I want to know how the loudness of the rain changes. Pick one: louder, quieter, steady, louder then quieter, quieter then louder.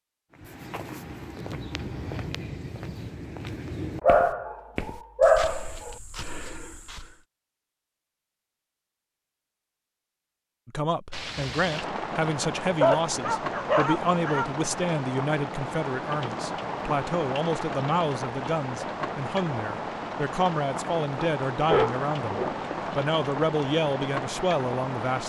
steady.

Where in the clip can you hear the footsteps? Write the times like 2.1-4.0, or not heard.
0.3-7.2.